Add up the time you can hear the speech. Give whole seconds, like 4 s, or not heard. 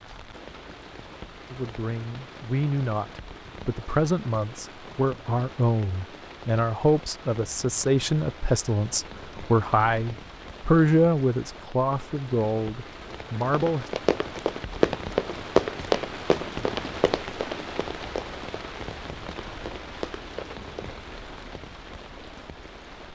12 s.